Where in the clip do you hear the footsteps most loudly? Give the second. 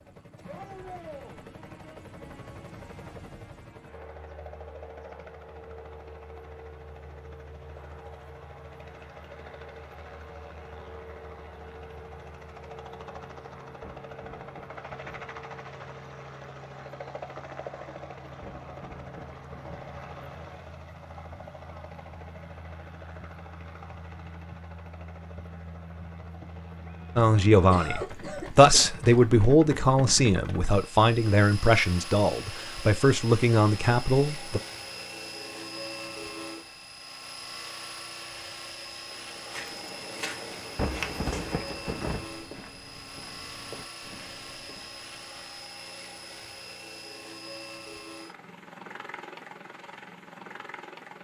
41 s.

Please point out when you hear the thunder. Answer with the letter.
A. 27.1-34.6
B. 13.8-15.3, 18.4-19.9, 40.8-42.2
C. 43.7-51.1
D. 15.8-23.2
B.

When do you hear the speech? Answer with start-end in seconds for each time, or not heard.
27.1-34.6.